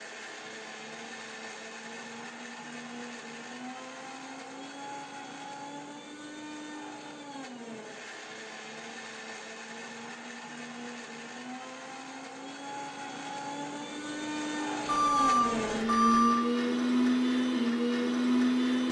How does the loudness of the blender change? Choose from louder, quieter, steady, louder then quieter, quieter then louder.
louder.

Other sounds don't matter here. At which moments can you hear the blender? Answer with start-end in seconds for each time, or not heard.
0.0-18.8.